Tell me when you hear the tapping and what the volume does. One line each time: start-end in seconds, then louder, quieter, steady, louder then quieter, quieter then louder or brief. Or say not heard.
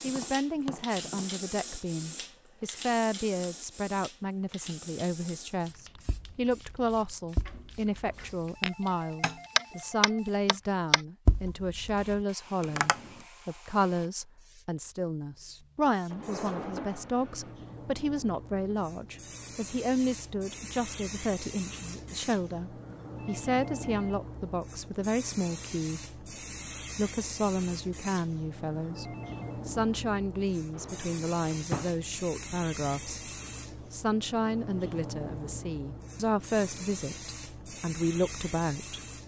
0.1-1.4 brief
6.0-13.1 louder then quieter.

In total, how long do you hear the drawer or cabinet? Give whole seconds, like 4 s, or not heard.
4 s.